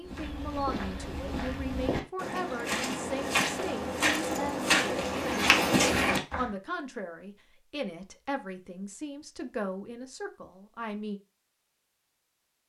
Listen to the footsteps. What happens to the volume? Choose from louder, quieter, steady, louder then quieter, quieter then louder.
louder.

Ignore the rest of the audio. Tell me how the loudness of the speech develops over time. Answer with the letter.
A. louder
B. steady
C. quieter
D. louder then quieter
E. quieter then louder
B.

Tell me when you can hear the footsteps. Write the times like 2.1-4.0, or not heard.
0.0-6.5.